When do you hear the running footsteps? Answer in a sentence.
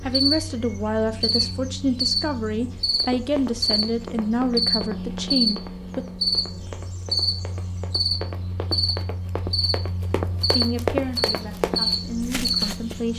You can hear the running footsteps from 3.0 to 13.0 s.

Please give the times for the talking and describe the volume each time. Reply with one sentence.
The talking can be heard from 0.0 to 6.0 s, at a steady volume; and briefly from 10.5 to 13.1 s.